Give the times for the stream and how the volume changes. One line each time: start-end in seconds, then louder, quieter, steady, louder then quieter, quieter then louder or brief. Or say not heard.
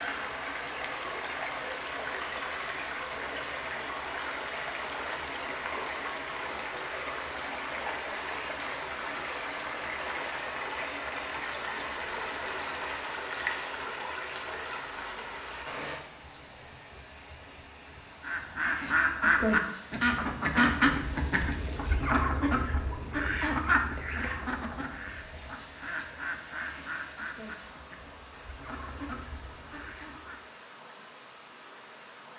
0.0-32.3 quieter.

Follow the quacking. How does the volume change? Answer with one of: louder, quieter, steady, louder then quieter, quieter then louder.
quieter.